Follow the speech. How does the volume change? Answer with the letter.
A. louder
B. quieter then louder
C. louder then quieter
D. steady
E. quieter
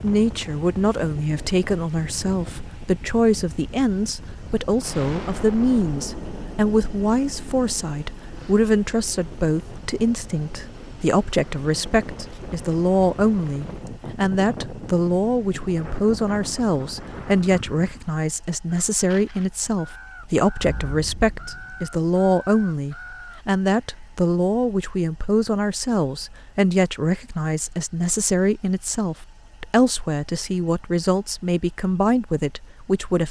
D.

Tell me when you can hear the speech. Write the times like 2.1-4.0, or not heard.
0.0-33.2.